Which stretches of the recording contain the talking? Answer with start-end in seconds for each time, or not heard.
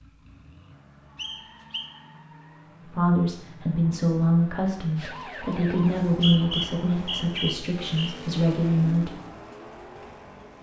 2.8-9.2.